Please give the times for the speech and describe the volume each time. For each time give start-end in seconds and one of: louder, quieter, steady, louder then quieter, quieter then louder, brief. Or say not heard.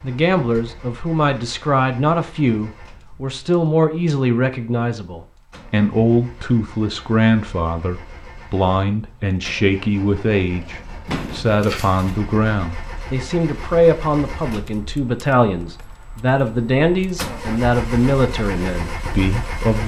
0.0-19.8 steady.